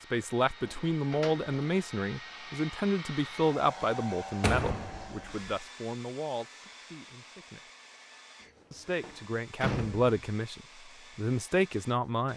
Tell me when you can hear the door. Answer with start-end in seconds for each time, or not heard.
0.5-1.8, 4.4-5.5, 8.4-10.2.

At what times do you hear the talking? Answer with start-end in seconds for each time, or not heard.
0.1-7.7, 8.7-12.3.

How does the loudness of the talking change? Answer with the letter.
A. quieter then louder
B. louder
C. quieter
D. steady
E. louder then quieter
A.